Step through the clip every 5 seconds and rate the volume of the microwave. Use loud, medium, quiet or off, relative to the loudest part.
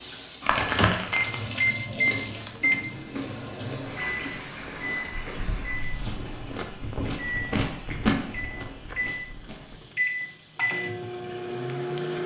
loud, medium, loud.